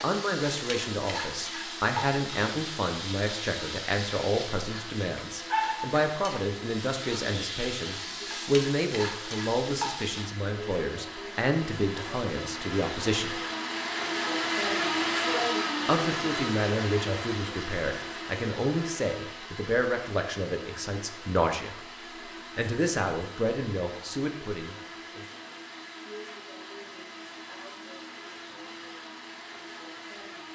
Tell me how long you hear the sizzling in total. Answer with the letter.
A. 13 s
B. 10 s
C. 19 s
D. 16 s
B.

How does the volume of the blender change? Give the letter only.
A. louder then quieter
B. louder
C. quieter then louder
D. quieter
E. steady
A.